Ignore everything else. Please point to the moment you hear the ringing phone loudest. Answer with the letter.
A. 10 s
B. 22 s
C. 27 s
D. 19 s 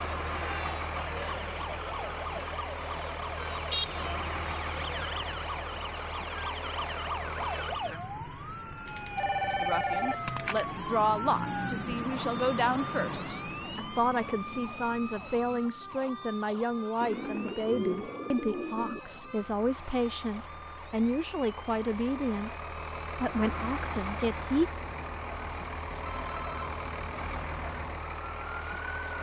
A.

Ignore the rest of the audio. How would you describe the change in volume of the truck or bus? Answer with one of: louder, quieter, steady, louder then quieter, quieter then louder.
quieter then louder.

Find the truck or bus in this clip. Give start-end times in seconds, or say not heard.
0.0-29.1.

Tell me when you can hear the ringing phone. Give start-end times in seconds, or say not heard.
8.8-10.7, 26.0-26.6.